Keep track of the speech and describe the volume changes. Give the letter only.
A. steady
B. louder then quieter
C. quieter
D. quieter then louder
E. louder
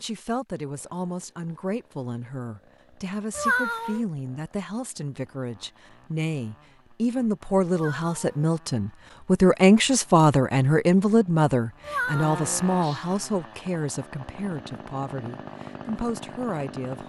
B.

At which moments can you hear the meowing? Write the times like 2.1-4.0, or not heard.
3.4-4.0, 7.7-8.5, 11.8-13.1.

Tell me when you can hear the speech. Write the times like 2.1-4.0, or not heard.
0.0-17.0.